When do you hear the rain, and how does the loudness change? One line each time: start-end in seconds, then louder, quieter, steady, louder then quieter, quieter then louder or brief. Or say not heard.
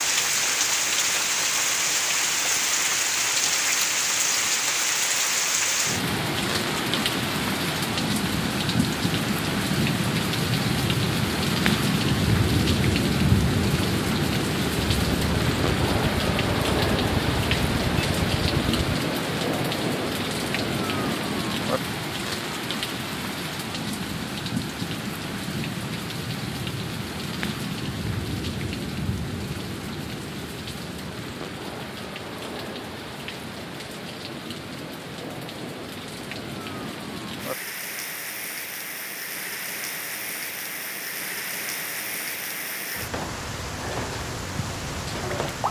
0.0-45.6 quieter.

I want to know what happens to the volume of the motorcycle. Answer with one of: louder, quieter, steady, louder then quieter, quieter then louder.
steady.